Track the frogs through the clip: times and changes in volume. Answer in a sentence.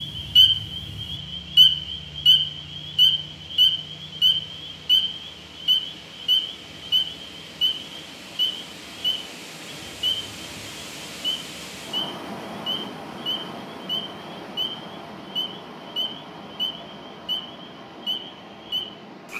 You can hear the frogs from 0.0 to 19.3 s, getting quieter.